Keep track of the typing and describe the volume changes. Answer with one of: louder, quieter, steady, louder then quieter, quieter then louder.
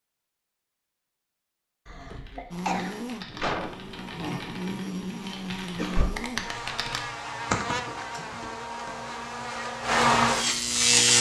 louder.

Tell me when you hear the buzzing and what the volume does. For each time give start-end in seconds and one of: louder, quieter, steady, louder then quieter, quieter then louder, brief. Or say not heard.
2.5-11.1 louder.